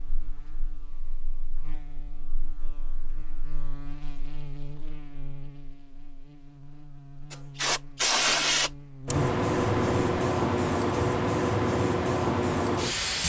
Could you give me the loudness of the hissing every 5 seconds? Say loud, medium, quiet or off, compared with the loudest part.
off, loud, loud.